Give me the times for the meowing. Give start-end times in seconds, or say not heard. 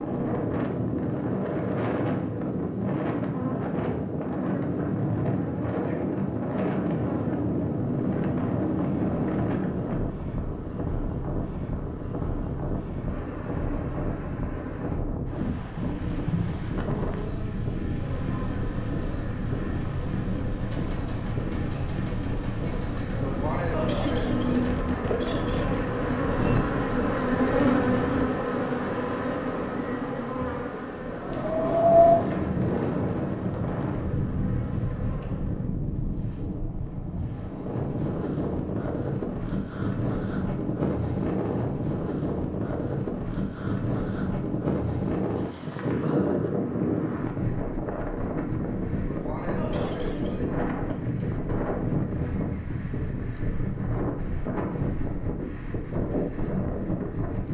not heard.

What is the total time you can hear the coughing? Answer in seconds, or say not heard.
4 s.